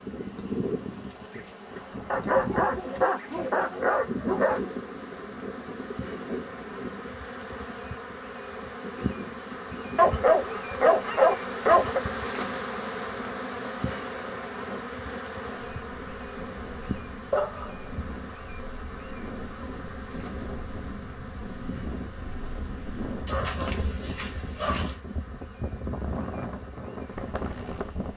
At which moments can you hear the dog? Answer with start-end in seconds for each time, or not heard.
2.1-4.7, 9.9-12.0, 17.3-17.9, 23.2-25.0.